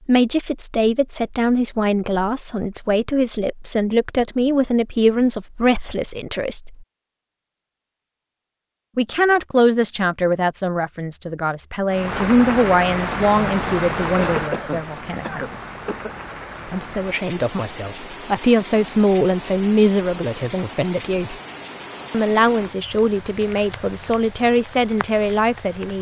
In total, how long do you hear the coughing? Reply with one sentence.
The coughing can be heard for 2 seconds in total.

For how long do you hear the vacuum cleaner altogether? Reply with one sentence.
You can't hear the vacuum cleaner here.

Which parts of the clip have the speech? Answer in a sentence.
You can hear the speech from 0.1 to 6.8 s, from 8.9 to 15.4 s, from 16.7 to 21.4 s and from 22.1 to 25.9 s.